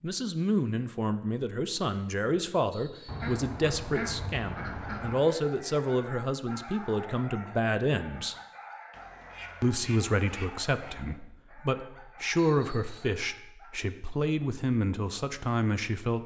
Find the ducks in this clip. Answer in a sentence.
You can hear the ducks from 3.0 to 5.2 s and from 8.9 to 10.9 s.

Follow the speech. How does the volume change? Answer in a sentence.
The volume of the speech stays about the same.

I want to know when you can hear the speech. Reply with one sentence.
The speech can be heard from 0.0 to 8.3 s and from 9.6 to 16.2 s.